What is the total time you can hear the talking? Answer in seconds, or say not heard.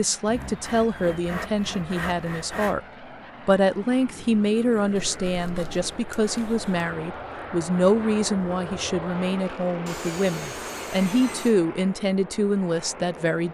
13 s.